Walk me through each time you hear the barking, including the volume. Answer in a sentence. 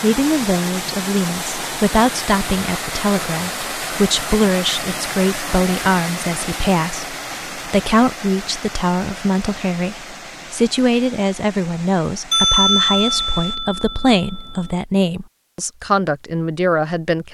You can't hear the barking here.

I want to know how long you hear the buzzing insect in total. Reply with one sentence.
You can't hear the buzzing insect here.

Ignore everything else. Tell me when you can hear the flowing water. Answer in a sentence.
The flowing water can be heard from 0.0 to 13.6 s.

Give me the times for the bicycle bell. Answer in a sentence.
You can hear the bicycle bell from 12.3 to 14.7 s.